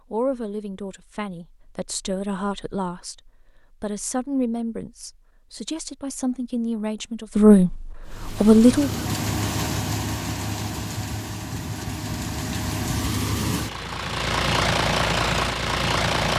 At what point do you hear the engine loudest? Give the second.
15 s.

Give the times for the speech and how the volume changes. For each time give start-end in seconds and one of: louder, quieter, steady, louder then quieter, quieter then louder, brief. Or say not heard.
0.1-8.9 louder.